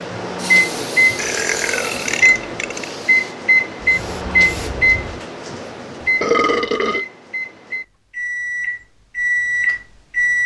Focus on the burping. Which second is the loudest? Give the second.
6 s.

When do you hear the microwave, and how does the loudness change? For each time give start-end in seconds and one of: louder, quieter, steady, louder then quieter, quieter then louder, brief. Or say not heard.
0.0-10.4 quieter then louder.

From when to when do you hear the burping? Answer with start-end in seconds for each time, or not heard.
1.1-2.9, 6.0-7.0.